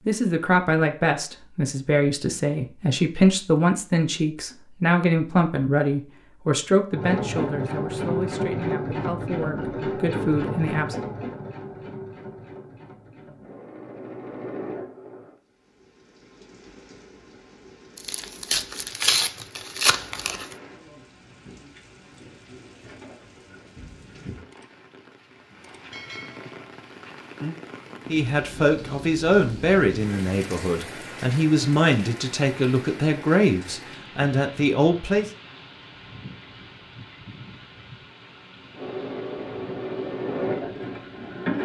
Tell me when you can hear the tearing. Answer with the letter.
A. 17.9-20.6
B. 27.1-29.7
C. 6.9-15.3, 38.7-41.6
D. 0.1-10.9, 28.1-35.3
A.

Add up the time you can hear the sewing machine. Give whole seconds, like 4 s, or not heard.
11 s.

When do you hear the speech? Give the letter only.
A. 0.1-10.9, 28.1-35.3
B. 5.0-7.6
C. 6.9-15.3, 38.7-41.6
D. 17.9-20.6
A.